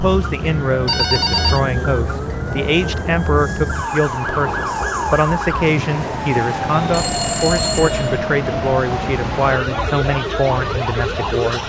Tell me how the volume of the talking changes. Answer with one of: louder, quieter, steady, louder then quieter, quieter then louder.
steady.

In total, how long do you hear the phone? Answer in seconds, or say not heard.
2 s.